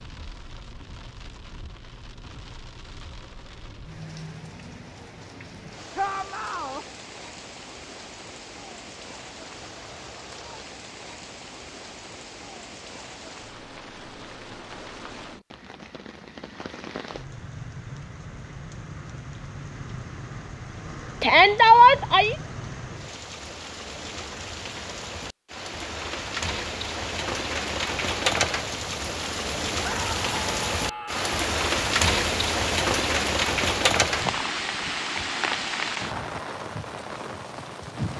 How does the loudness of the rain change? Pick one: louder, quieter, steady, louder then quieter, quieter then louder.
louder.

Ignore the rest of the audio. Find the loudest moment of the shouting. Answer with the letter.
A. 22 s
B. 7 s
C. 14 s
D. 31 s
A.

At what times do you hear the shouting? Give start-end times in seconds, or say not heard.
6.0-6.8, 21.2-22.4, 29.8-31.3.